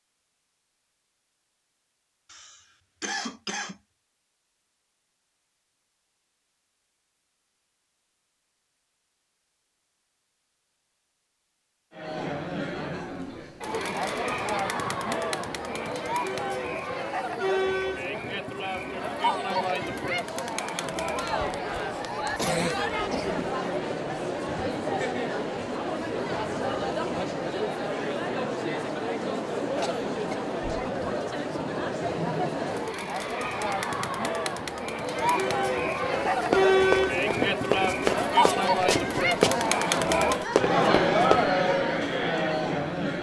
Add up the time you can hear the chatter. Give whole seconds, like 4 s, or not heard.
31 s.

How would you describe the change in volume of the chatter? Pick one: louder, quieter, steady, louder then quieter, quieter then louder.
louder.